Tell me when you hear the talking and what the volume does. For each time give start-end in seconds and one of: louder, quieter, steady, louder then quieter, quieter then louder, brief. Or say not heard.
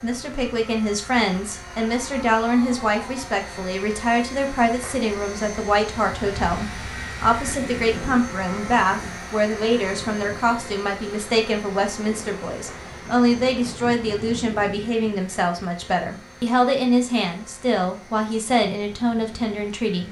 0.0-20.0 steady.